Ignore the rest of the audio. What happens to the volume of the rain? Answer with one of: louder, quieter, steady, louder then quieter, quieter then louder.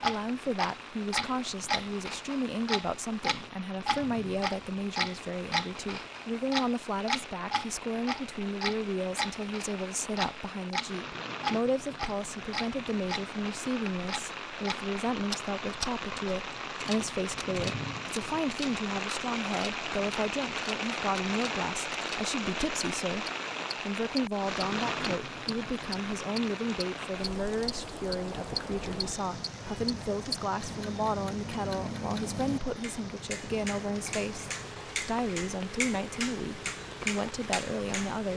louder then quieter.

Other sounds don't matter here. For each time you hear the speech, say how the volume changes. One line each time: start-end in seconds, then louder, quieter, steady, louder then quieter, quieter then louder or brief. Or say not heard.
0.0-38.3 steady.